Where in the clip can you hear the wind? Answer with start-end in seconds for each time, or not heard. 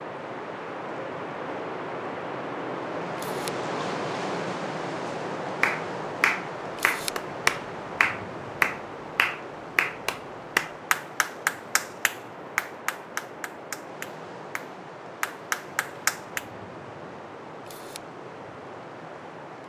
0.0-19.6.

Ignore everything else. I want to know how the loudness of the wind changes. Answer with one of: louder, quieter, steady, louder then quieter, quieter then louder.
quieter.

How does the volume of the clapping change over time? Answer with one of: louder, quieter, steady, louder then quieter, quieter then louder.
quieter.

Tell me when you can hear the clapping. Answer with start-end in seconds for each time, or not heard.
5.6-16.4.